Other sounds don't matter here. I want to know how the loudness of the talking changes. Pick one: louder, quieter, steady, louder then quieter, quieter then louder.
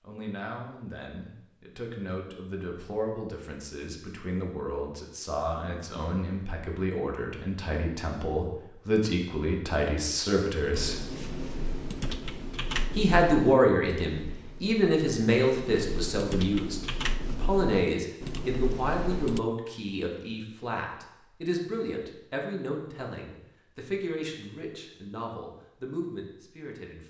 louder then quieter.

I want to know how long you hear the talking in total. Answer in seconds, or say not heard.
25 s.